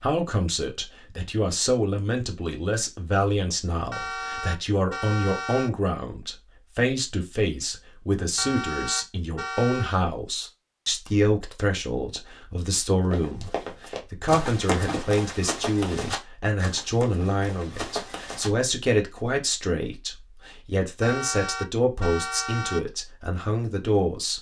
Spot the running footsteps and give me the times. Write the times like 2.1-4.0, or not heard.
13.1-18.5.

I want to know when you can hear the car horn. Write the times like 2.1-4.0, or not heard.
3.9-5.7, 8.3-10.0, 21.0-22.9.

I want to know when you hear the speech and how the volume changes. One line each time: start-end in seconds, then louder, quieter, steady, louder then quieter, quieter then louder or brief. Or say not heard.
0.0-24.3 steady.